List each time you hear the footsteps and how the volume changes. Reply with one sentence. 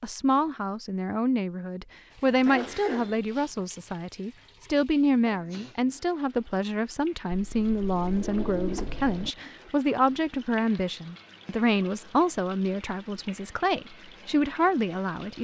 The footsteps can't be heard in this clip.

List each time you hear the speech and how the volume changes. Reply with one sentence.
You can hear the speech from 0.0 to 15.3 s, at a steady volume.